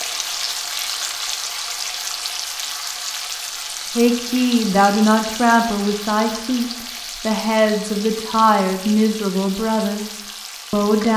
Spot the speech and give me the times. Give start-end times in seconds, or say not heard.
4.0-11.1.